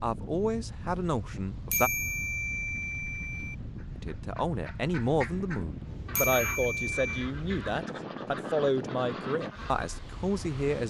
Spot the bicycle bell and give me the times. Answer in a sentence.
The bicycle bell can be heard from 1.7 to 3.5 s and from 6.2 to 7.3 s.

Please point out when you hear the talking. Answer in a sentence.
The talking can be heard from 0.0 to 1.9 s and from 4.0 to 10.8 s.